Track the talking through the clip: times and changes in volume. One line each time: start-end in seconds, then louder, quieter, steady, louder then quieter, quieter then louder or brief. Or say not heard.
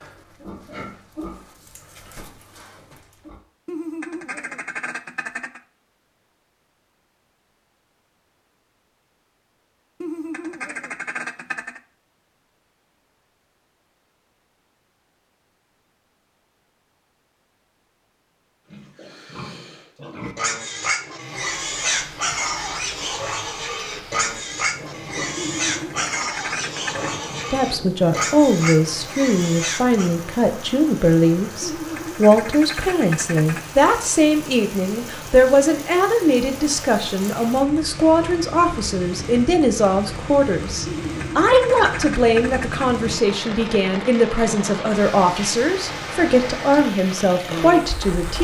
27.5-48.3 steady.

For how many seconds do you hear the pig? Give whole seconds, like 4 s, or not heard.
15 s.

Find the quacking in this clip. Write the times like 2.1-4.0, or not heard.
3.6-5.6, 10.0-11.8, 25.4-27.1, 31.6-33.6, 40.9-42.9.